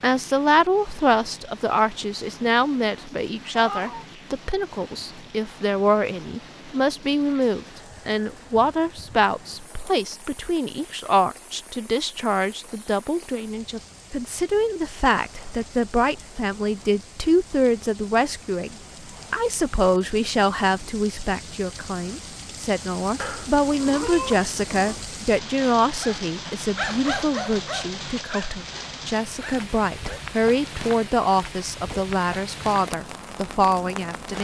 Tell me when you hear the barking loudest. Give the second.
27 s.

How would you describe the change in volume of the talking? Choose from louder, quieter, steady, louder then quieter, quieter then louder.
steady.